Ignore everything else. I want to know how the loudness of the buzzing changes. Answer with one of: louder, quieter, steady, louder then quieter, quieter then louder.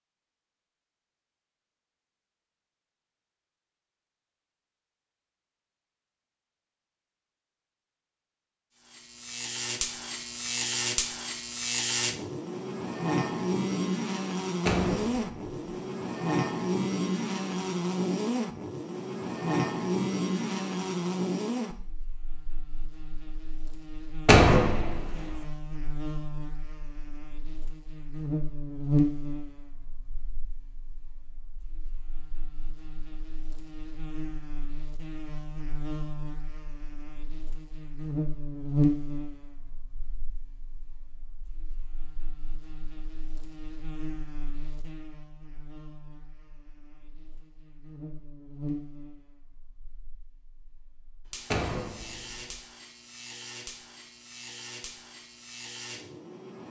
quieter.